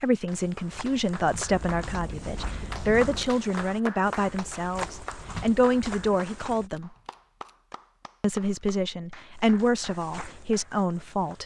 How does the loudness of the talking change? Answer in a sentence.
The volume of the talking stays about the same.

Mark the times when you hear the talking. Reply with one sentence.
The talking can be heard from 0.0 to 6.9 s and from 8.2 to 11.4 s.